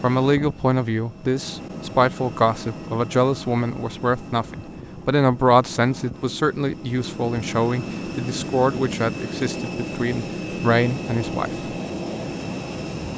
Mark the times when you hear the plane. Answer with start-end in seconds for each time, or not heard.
0.0-13.1.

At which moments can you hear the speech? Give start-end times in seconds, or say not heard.
0.0-11.5.